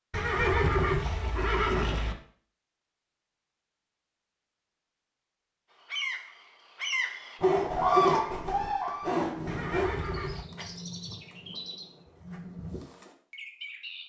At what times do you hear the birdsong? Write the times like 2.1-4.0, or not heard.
5.7-14.0.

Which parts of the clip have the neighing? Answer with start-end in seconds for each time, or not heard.
0.1-2.1, 9.4-10.4.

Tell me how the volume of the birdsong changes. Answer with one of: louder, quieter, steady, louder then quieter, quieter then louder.
louder then quieter.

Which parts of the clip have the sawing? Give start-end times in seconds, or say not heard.
7.4-9.9.